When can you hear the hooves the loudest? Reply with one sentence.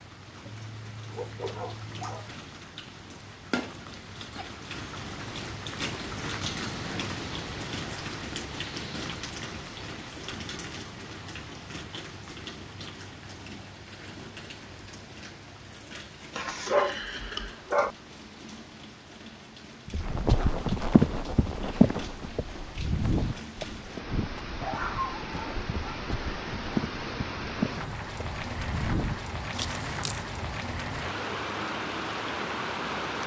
The volume of the hooves peaks at 22 seconds.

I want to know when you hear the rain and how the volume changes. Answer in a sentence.
You can hear the rain from 0.0 to 33.2 s, getting quieter then louder.